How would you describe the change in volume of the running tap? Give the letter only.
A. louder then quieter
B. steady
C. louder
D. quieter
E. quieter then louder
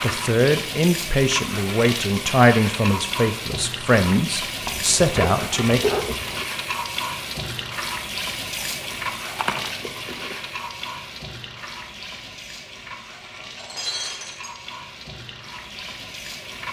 D.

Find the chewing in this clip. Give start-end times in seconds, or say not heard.
4.6-6.5, 8.6-10.3.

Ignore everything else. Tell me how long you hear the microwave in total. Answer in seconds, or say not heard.
not heard.